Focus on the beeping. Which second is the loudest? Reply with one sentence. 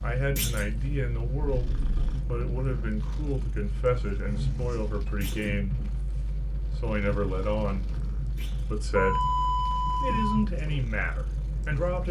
The volume of the beeping peaks at 9 seconds.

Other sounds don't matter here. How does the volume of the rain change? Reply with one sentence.
The loudness of the rain stays about the same.